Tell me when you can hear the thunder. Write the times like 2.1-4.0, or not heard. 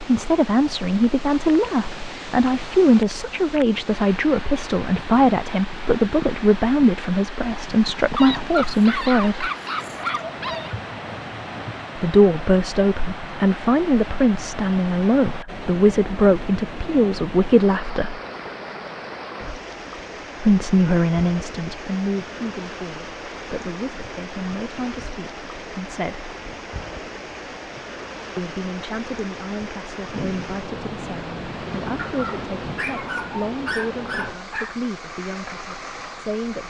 10.3-11.8, 30.1-33.0.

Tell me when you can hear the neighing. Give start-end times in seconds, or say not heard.
not heard.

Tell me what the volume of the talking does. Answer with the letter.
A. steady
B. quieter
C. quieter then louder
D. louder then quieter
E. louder
B.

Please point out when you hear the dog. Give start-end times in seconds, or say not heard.
8.2-10.8, 31.9-34.8.